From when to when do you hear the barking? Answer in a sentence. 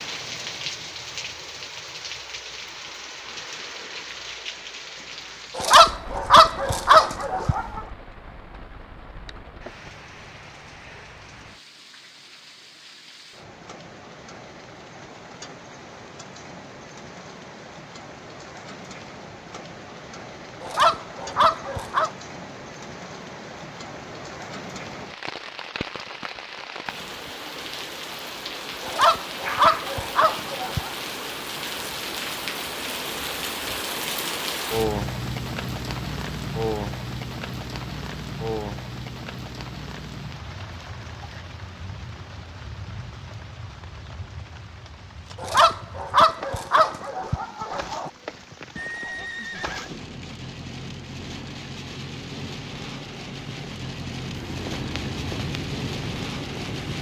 The barking can be heard from 5.5 to 7.8 s, from 20.6 to 22.1 s, from 28.8 to 30.9 s and from 45.4 to 48.1 s.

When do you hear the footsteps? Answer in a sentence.
The footsteps can be heard from 54.3 to 56.9 s.